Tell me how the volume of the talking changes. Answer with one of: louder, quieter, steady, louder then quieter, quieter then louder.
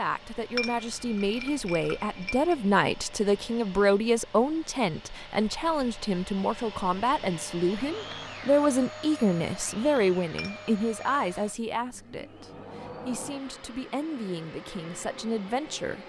quieter.